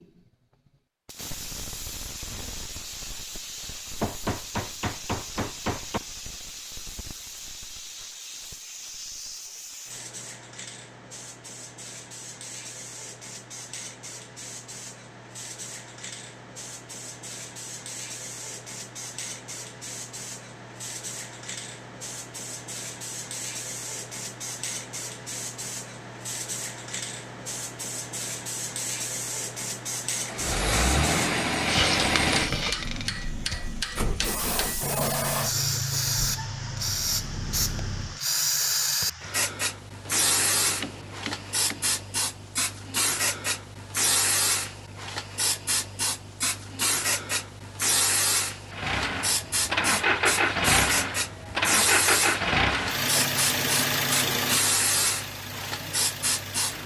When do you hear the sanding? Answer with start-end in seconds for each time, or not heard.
not heard.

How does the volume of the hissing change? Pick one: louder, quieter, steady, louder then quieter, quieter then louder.
louder.